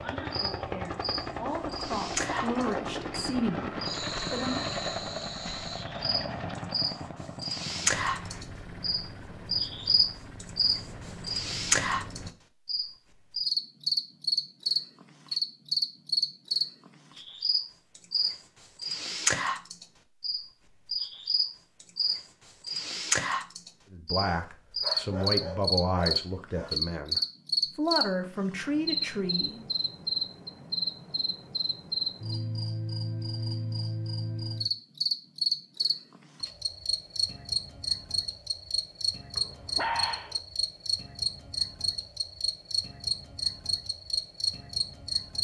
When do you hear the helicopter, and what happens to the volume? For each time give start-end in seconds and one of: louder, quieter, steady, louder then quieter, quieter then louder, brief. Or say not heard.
0.0-12.3 quieter.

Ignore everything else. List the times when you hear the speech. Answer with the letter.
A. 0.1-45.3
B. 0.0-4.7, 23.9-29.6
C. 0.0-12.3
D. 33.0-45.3
B.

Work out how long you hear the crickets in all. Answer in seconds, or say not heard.
45 s.